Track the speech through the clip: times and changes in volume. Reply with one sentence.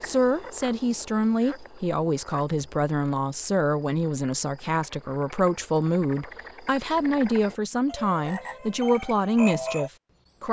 The speech can be heard from 0.0 to 10.4 s, at a steady volume.